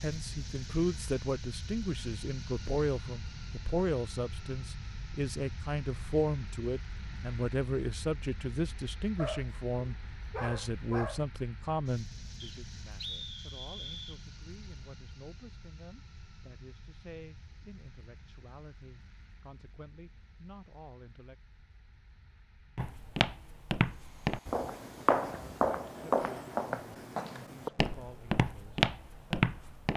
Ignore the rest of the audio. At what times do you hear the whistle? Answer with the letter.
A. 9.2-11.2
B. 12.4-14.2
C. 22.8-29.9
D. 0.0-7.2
B.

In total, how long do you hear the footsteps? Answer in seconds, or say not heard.
7 s.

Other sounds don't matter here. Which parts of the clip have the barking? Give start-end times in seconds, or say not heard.
9.2-11.2.